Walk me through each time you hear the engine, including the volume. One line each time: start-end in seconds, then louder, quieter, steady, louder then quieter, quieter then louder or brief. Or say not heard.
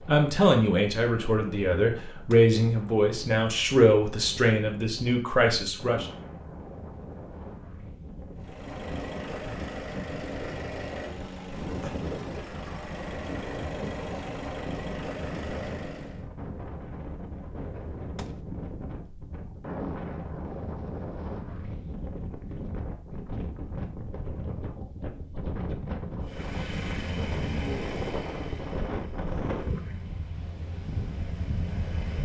8.3-16.2 steady
26.2-32.2 quieter then louder.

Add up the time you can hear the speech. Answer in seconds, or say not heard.
6 s.